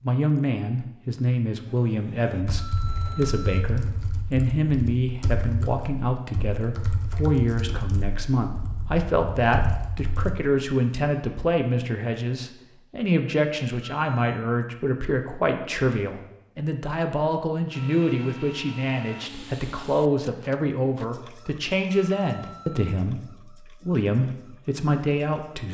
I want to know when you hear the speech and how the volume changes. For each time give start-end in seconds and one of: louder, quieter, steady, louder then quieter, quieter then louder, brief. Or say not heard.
0.0-25.6 steady.